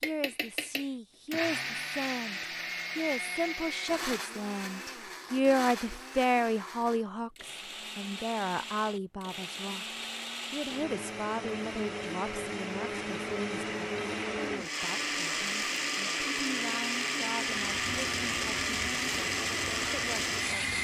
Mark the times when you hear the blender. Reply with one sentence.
You can hear the blender from 0.0 to 20.7 s.